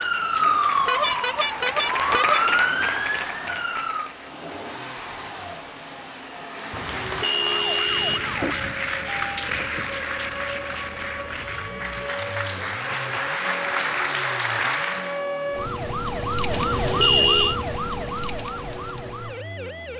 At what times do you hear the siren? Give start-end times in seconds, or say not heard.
0.0-4.1, 7.5-19.9.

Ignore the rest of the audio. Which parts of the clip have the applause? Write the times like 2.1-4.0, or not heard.
0.0-4.3, 6.5-15.2.